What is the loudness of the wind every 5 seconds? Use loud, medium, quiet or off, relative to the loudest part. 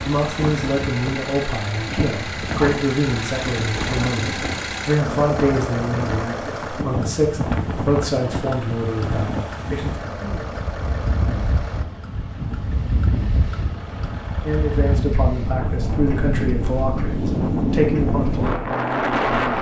medium, medium, medium, loud.